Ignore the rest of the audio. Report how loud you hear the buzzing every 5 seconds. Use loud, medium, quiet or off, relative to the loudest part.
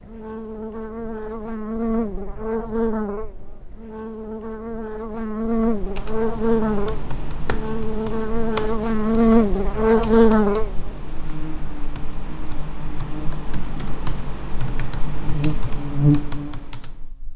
medium, loud, loud, loud.